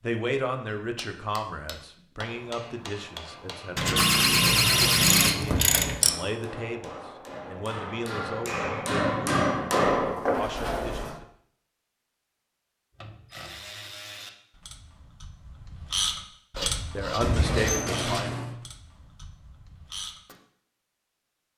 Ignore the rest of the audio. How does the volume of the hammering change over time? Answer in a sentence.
The volume of the hammering goes up.